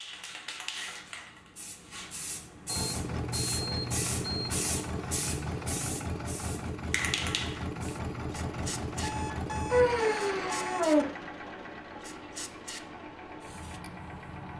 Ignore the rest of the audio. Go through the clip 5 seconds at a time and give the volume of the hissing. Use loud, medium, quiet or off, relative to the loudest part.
loud, loud, medium.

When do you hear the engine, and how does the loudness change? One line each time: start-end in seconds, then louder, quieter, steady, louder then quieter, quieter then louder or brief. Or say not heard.
2.7-14.5 quieter.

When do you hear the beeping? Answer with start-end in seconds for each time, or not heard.
2.6-4.5, 9.0-11.1.